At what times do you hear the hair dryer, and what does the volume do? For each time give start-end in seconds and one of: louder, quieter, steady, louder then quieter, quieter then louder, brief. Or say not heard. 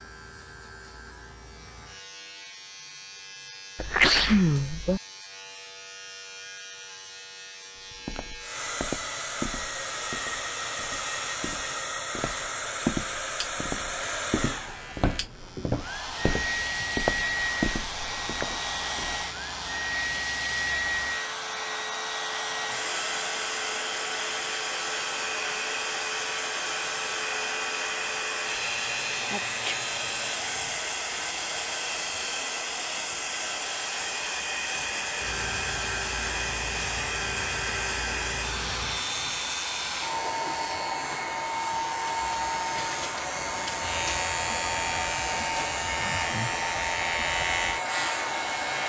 8.4-48.8 steady.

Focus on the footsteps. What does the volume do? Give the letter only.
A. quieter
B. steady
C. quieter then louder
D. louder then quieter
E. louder
C.